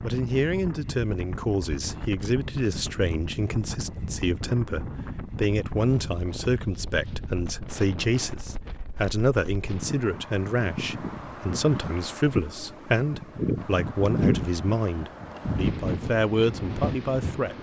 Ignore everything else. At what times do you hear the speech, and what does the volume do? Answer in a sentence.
The speech can be heard from 0.0 to 17.5 s, at a steady volume.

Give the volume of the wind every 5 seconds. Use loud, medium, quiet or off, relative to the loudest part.
medium, medium, loud, loud.